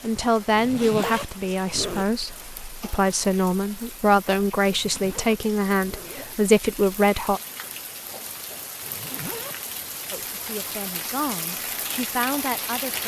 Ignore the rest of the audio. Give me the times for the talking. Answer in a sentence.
The talking can be heard from 0.0 to 7.4 s and from 10.1 to 13.0 s.